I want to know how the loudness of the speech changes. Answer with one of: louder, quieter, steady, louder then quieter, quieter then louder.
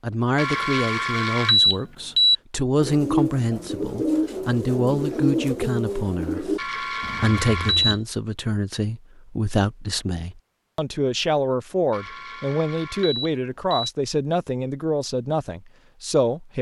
steady.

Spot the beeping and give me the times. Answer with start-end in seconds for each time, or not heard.
0.3-2.4, 6.5-8.0, 11.9-13.9.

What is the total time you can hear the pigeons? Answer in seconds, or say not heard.
5 s.